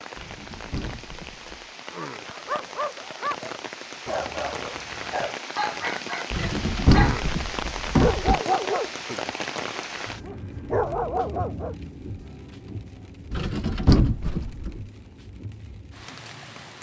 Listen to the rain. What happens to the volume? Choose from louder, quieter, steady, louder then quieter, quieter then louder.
louder then quieter.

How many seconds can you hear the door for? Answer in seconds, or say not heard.
5 s.